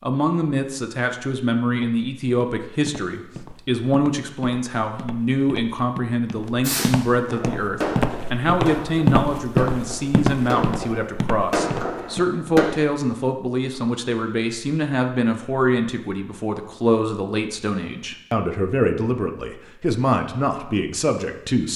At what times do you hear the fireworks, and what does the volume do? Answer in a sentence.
You can hear the fireworks from 6.6 to 12.7 s, getting quieter then louder.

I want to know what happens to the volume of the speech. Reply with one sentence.
The volume of the speech stays about the same.